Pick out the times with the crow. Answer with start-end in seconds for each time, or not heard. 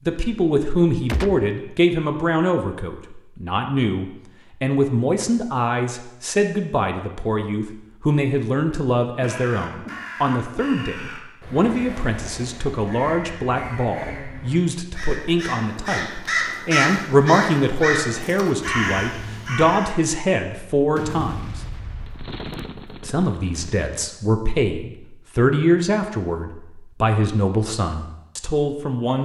9.2-19.9.